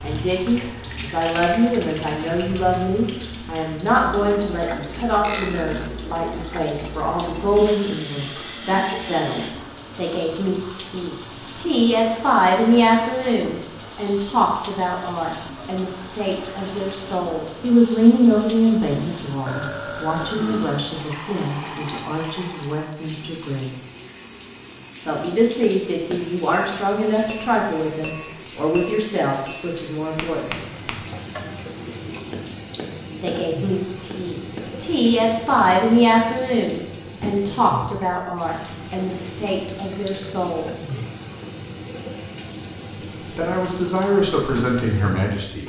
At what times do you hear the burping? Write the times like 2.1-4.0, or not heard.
5.2-5.9, 19.4-20.8, 40.0-41.1.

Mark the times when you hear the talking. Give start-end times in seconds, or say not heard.
0.0-23.8, 25.1-30.6, 33.2-40.7, 43.4-45.6.